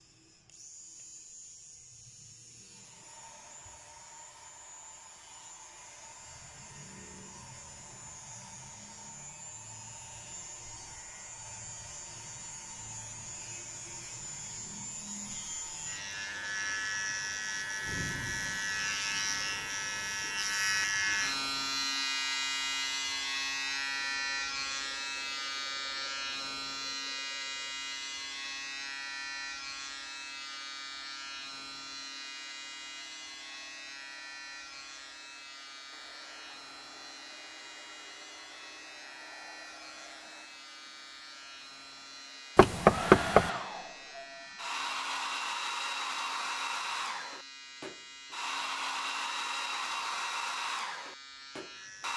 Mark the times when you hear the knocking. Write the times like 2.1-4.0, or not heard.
42.5-43.5.